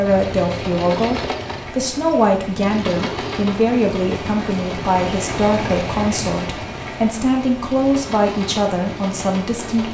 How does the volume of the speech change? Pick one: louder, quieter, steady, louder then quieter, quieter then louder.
steady.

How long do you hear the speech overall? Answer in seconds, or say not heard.
10 s.